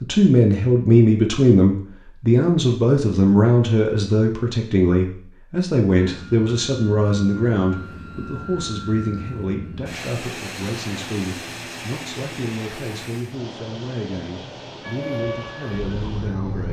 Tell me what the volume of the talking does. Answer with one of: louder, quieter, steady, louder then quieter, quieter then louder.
quieter.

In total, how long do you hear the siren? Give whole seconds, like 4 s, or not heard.
2 s.